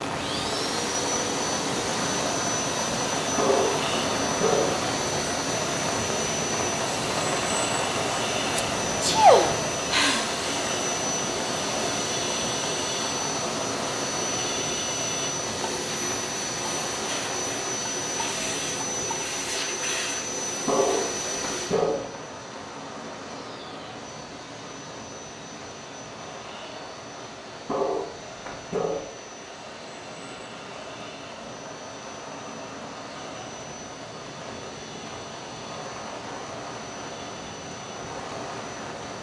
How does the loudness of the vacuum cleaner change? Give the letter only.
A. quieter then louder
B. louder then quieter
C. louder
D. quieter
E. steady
D.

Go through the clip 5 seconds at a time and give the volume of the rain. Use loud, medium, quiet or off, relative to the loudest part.
loud, loud, loud, medium, medium, quiet, medium, medium.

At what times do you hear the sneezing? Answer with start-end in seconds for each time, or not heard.
8.6-10.4.